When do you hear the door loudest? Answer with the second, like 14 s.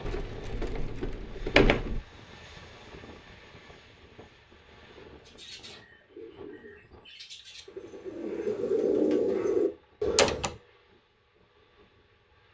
2 s.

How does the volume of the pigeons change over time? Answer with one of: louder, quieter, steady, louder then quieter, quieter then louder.
louder.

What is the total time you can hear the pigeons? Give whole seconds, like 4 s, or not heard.
5 s.